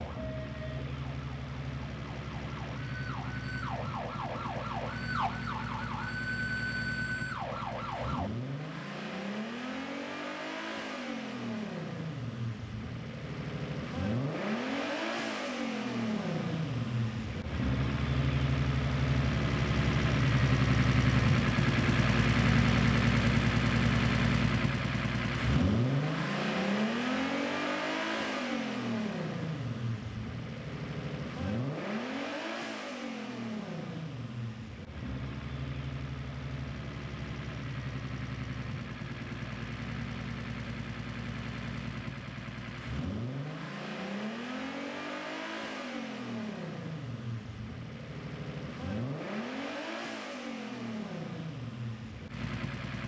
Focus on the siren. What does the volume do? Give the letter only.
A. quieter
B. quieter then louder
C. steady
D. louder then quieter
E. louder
E.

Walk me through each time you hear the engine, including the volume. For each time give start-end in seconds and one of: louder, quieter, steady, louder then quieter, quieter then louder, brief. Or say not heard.
0.0-53.0 louder then quieter.